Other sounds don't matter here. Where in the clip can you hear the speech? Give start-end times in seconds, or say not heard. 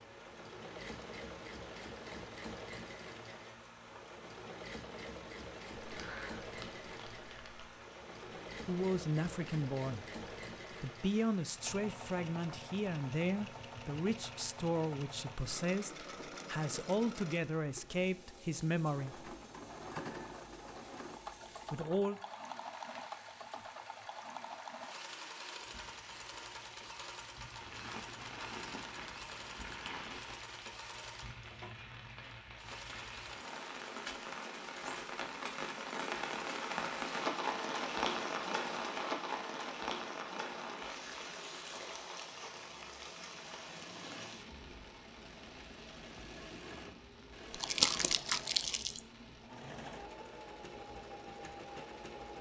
8.7-10.1, 10.7-19.3, 21.7-22.2.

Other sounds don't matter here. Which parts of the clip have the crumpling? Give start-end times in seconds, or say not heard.
5.8-7.8, 27.6-30.4, 47.5-49.0.